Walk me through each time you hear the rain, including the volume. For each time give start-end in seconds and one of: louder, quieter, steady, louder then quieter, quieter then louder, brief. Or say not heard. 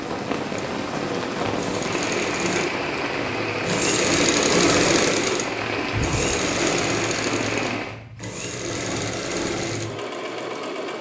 0.0-8.0 steady.